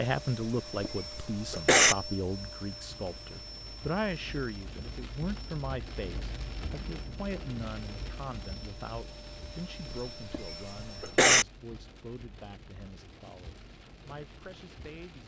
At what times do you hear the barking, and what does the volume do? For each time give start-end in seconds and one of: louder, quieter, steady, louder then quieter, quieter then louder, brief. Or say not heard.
not heard.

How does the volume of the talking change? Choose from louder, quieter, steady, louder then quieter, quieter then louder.
quieter.